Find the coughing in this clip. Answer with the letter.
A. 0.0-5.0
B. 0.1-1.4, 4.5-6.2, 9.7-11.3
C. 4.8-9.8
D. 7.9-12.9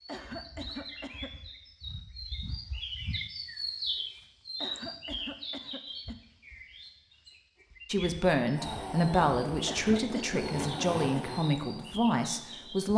B.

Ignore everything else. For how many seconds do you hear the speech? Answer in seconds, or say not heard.
5 s.